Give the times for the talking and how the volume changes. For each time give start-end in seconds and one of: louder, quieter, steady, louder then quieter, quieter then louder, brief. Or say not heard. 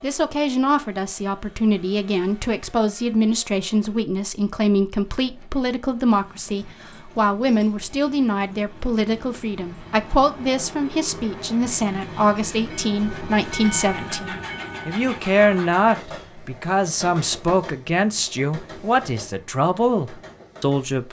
0.0-21.0 steady.